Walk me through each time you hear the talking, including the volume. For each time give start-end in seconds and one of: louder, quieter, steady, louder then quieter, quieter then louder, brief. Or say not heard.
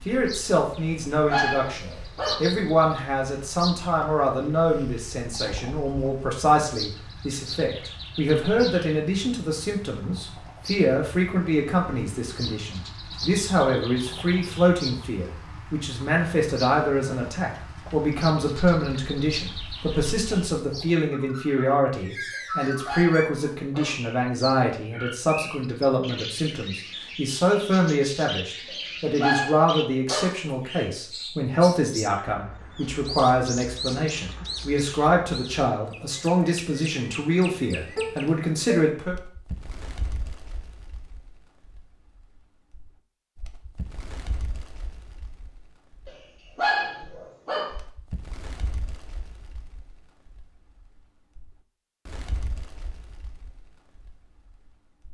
0.1-39.1 steady.